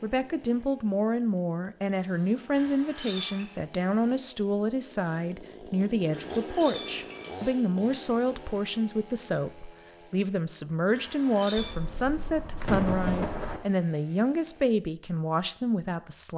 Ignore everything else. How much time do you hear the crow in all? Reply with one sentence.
You can't hear the crow here.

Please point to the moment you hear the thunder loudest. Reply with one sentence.
The volume of the thunder peaks at 13 seconds.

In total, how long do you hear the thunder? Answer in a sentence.
You can hear the thunder for 2 seconds altogether.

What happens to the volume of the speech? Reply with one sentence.
The volume of the speech stays about the same.